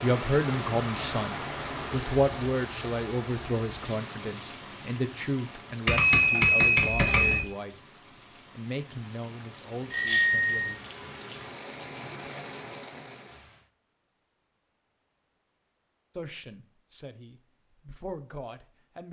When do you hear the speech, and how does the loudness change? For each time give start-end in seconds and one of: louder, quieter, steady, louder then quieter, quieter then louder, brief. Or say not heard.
0.0-7.8 quieter
8.6-10.8 brief
16.1-19.0 brief.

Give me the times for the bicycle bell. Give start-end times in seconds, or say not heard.
5.8-7.5, 9.9-10.8.